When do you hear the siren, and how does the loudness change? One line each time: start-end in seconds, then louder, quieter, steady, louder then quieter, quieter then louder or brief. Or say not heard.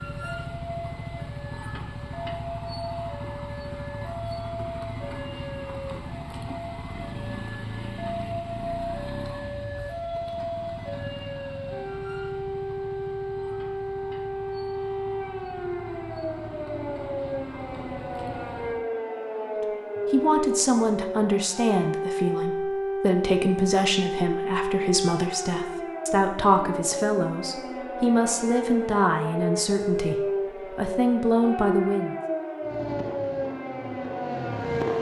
0.0-34.9 louder.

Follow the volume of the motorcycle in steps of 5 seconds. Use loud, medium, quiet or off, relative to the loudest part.
loud, loud, medium, medium, off, off, loud.